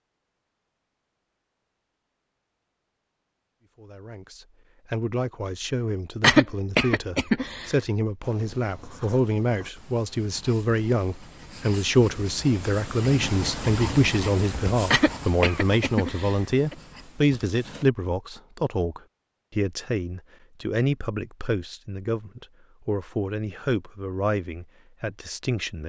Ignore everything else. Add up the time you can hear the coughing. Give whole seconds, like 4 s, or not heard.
3 s.